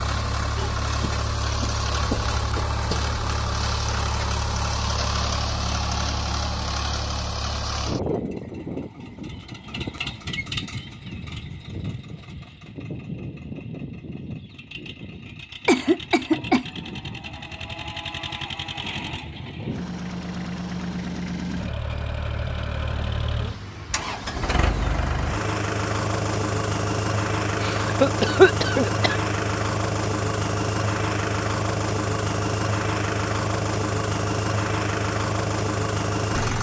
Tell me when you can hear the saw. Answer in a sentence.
The saw can't be heard in this clip.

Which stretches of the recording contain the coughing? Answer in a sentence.
You can hear the coughing from 0.6 to 2.7 s, from 15.7 to 16.6 s and from 27.6 to 29.2 s.